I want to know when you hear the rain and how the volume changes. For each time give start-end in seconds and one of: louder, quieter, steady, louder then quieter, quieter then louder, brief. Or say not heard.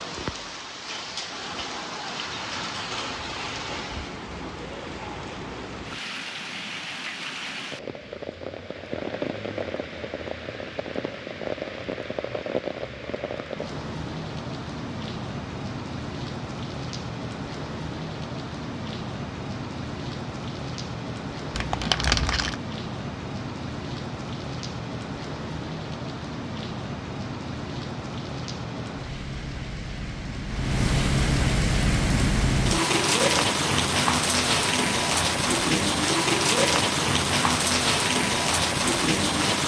0.0-39.6 louder.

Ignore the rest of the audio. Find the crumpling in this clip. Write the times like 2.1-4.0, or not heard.
21.5-22.6.